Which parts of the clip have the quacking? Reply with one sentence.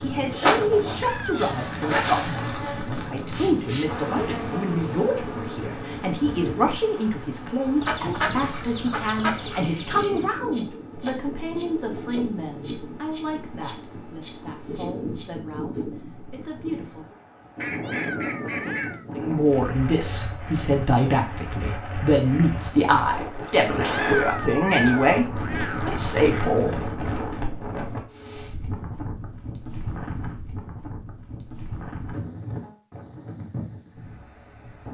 You can hear the quacking from 7.8 to 10.2 s and from 17.6 to 18.9 s.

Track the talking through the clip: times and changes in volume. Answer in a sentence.
The talking can be heard from 0.0 to 17.1 s, getting quieter; and from 19.1 to 27.3 s, at a steady volume.